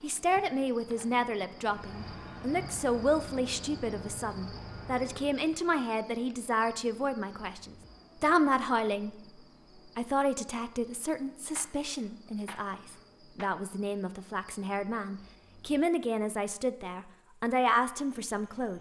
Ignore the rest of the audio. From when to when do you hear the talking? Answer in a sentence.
The talking can be heard from 0.0 to 9.2 s and from 9.9 to 18.7 s.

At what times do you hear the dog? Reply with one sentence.
You can't hear the dog here.